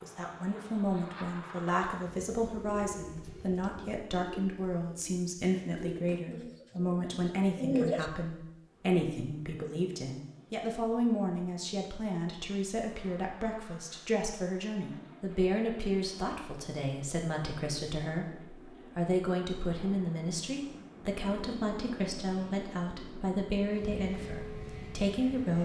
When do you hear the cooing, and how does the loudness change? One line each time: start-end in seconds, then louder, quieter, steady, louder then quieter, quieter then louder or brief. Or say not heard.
2.0-8.1 quieter then louder.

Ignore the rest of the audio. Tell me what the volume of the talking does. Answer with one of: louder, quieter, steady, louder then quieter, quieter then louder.
steady.